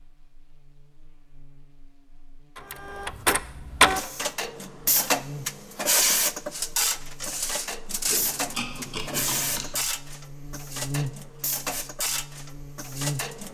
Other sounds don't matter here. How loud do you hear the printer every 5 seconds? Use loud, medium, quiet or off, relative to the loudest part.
loud, loud, medium.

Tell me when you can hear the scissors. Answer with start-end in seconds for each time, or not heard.
8.1-9.7.